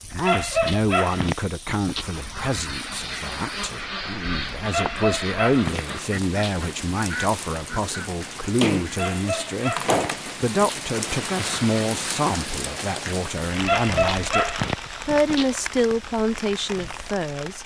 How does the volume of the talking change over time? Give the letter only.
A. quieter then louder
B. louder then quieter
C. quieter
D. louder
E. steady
E.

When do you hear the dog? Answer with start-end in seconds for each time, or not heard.
0.1-2.0, 4.7-6.7, 8.9-10.8, 13.6-15.6.